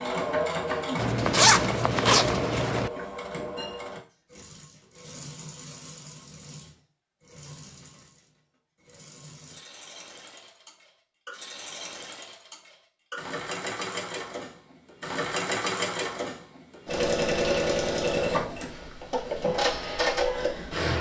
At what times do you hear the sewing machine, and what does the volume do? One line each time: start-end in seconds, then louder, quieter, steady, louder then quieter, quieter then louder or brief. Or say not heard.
0.0-20.9 quieter then louder.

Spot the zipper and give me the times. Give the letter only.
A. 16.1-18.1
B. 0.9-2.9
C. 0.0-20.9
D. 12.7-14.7
B.